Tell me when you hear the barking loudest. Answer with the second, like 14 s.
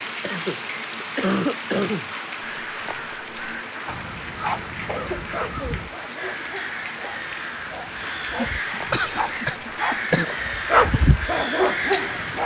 11 s.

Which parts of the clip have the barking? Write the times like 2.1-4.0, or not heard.
3.9-12.4.